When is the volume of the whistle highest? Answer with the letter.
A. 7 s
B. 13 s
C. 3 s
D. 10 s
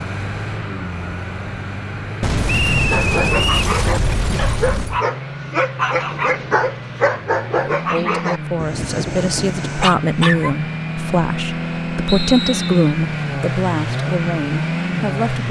C.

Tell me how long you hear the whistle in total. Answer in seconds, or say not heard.
2 s.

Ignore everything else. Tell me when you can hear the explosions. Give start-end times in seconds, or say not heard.
2.2-5.0.